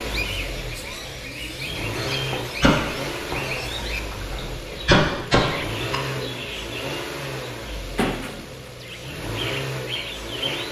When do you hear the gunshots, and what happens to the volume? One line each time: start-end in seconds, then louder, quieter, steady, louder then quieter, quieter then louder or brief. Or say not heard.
1.9-6.0 quieter then louder.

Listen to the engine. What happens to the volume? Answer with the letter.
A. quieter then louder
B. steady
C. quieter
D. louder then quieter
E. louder
B.